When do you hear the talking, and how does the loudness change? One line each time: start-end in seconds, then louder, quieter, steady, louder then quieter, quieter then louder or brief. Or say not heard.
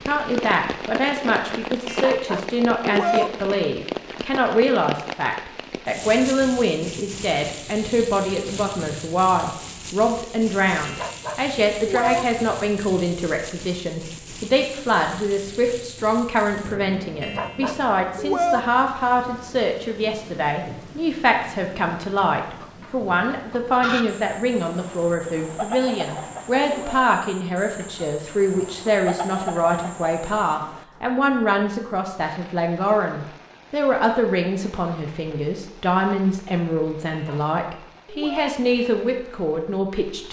0.1-40.2 steady.